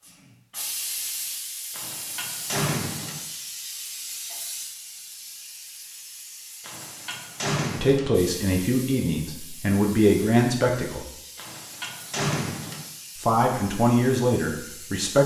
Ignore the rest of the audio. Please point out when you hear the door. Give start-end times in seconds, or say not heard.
1.7-3.2, 6.6-8.1, 11.3-12.8.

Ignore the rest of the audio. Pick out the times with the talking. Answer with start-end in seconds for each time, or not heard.
7.8-11.1, 13.2-15.2.